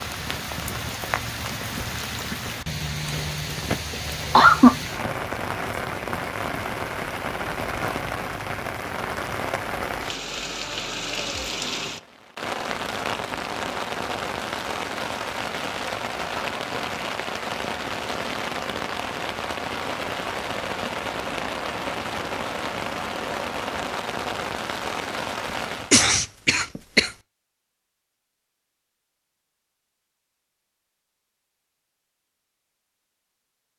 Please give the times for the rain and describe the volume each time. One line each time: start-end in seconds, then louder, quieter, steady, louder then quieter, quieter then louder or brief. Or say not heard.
0.0-25.9 steady.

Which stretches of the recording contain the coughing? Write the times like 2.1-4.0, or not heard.
3.9-4.8, 25.9-27.1.